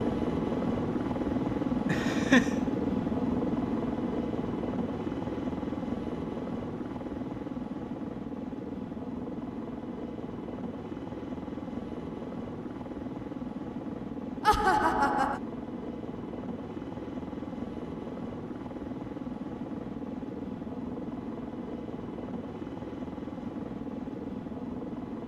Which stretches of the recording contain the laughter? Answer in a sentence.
You can hear the laughter from 1.9 to 2.5 s and from 14.4 to 15.4 s.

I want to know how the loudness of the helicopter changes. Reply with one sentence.
The volume of the helicopter goes down.